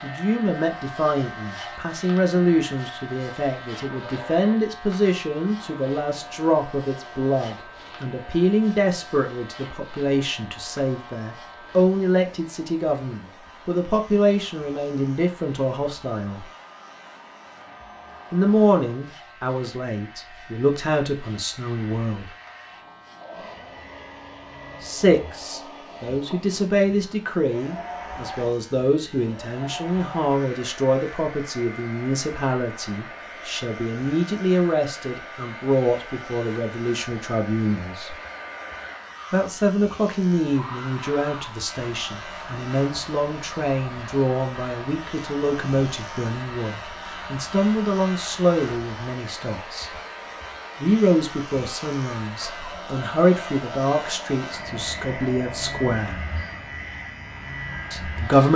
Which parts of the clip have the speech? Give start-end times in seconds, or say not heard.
0.0-16.4, 18.3-22.3, 24.8-38.1, 39.3-49.9, 50.8-56.2, 57.9-58.5.